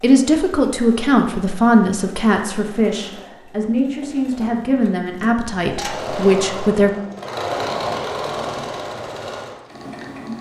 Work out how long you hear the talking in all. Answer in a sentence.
The talking can be heard for 7 seconds in total.